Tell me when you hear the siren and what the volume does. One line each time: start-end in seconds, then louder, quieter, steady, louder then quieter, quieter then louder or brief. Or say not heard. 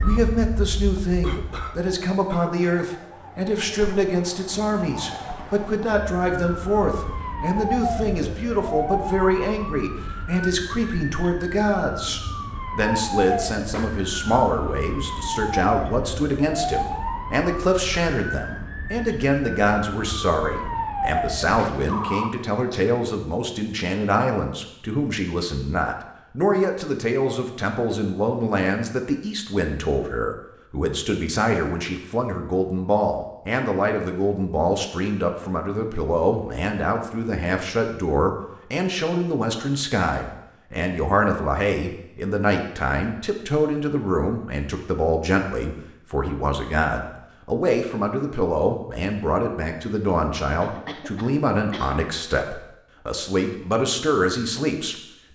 0.0-22.3 louder.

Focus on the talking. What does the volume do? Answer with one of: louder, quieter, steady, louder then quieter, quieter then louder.
steady.